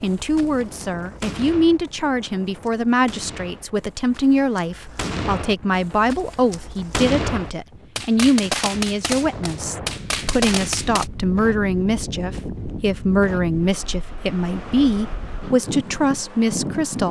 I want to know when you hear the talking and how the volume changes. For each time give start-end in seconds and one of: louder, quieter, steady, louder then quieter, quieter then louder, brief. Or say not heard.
0.0-17.0 steady.